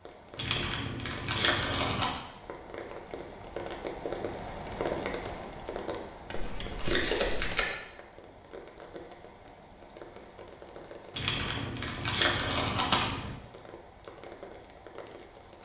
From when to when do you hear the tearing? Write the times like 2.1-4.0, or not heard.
0.3-2.1, 6.3-7.7, 11.1-13.3.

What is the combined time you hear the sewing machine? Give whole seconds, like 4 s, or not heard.
not heard.